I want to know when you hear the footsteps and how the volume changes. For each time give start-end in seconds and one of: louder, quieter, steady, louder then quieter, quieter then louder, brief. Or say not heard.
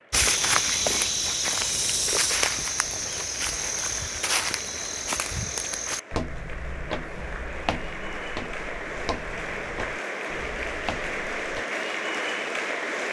0.1-11.7 quieter.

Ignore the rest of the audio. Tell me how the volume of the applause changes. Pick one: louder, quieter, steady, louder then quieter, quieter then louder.
louder.